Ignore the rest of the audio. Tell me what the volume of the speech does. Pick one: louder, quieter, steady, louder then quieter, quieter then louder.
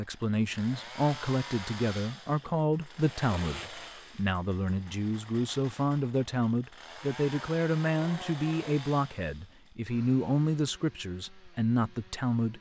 steady.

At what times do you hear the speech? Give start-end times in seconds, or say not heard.
0.0-12.5.